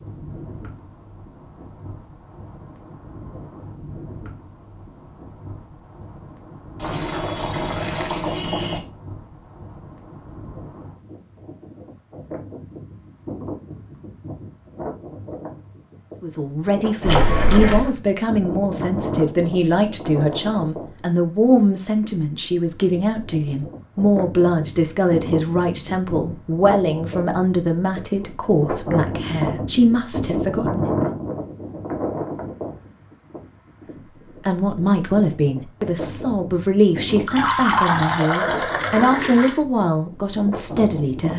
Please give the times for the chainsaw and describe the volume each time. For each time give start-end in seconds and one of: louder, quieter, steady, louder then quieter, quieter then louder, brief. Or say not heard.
not heard.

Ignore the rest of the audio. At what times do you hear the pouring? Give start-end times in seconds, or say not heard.
6.8-8.8, 17.1-17.9, 37.1-39.5.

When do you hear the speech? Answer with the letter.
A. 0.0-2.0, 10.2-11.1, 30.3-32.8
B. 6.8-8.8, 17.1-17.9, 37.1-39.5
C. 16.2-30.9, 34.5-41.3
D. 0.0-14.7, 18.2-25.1
C.